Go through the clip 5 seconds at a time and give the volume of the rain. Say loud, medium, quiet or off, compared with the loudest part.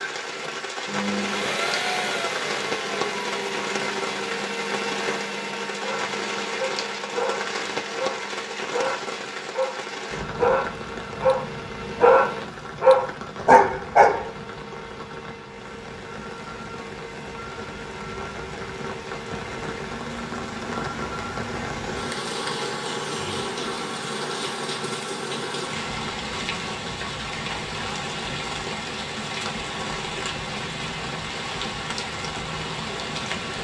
loud, loud, medium, medium, loud, loud, loud.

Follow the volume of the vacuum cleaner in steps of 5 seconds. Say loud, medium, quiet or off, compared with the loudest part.
loud, medium, medium, medium, medium, off, off.